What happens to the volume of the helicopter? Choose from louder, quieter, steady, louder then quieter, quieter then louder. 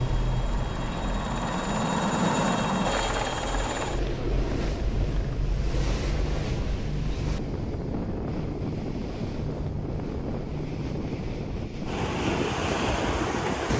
louder then quieter.